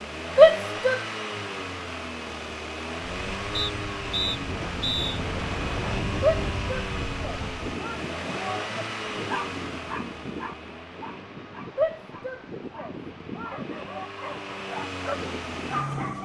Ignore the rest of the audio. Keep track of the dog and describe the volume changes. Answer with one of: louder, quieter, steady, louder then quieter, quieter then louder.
quieter then louder.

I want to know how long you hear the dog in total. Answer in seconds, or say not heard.
7 s.